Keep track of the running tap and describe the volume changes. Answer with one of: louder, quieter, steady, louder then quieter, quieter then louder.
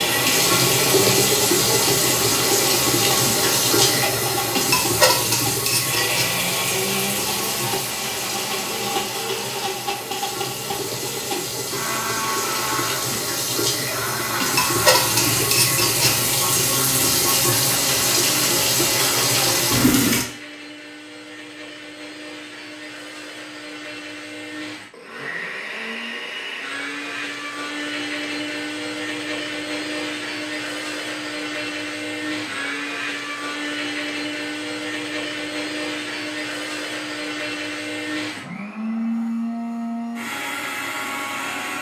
quieter then louder.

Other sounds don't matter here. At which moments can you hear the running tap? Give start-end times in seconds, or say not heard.
0.0-20.2.